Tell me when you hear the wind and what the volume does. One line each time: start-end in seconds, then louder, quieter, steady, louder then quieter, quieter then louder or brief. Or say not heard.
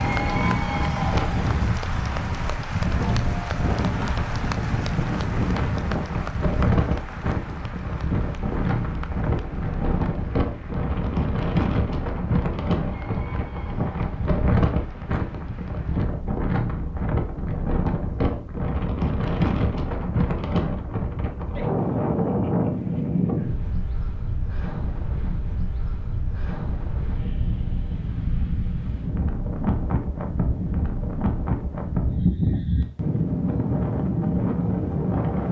0.0-35.4 steady.